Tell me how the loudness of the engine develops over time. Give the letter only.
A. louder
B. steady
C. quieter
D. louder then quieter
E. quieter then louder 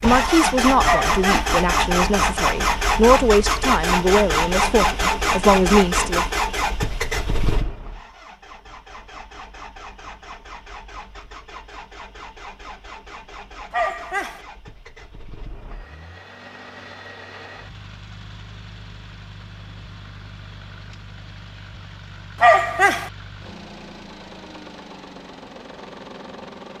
C.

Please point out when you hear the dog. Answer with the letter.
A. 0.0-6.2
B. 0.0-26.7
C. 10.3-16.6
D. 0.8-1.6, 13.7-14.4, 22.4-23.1
D.